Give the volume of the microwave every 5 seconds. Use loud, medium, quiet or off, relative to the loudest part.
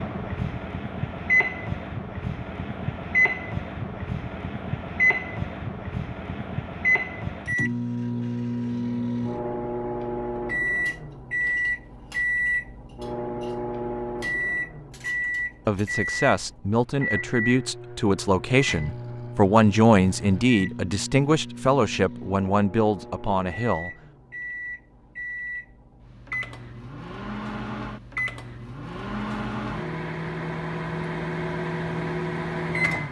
loud, loud, loud, medium, medium, medium, loud.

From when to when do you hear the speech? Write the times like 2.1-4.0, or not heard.
15.7-23.9.